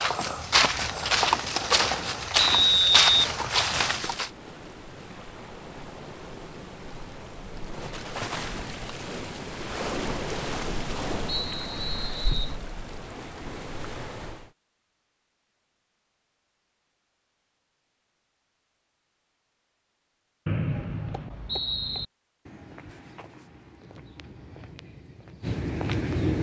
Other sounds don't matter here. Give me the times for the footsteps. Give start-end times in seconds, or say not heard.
0.0-4.3, 21.1-26.3.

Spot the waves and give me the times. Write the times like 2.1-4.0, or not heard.
0.0-14.5.